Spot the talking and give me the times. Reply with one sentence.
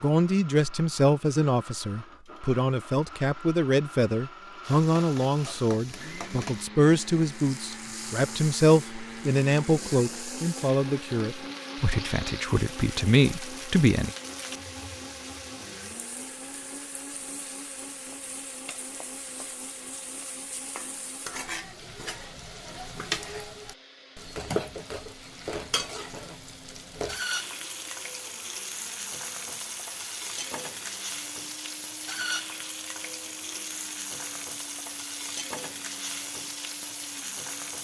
You can hear the talking from 0.0 to 14.1 s.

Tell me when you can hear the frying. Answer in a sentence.
You can hear the frying from 4.6 to 37.7 s.